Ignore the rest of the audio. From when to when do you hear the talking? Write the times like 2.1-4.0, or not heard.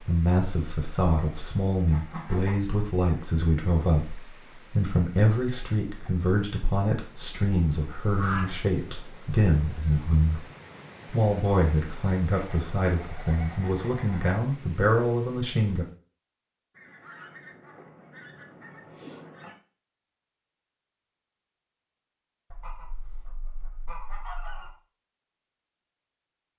0.1-10.4, 11.1-15.8.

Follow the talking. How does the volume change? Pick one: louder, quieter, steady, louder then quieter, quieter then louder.
steady.